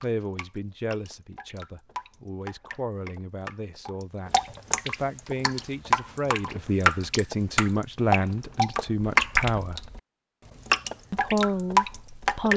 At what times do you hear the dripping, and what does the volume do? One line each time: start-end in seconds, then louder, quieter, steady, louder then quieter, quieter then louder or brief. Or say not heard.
0.0-10.0 louder
10.7-12.5 brief.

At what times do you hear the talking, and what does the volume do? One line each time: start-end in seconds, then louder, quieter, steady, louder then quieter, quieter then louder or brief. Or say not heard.
0.0-9.8 louder
11.1-12.5 brief.